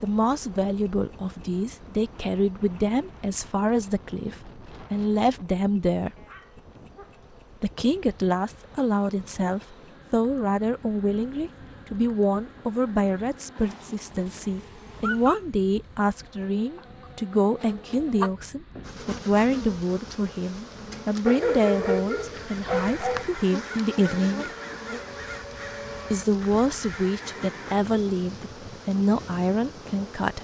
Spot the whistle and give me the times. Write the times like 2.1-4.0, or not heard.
not heard.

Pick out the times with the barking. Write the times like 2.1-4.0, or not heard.
6.2-7.4, 13.8-14.3, 15.0-15.4, 21.2-23.2.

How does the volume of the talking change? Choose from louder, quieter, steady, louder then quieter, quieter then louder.
steady.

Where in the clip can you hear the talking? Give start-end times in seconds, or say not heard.
0.0-6.2, 7.6-24.5, 26.1-30.4.